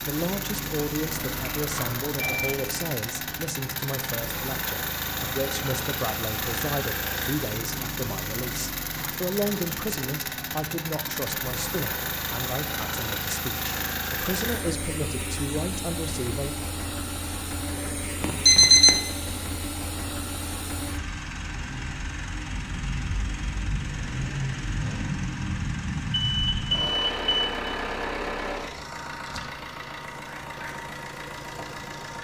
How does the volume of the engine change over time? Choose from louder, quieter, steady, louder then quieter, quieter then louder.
steady.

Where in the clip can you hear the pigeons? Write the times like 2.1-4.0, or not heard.
not heard.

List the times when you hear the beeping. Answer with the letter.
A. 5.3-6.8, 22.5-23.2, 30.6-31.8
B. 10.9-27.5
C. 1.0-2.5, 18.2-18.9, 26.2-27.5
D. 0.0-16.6
C.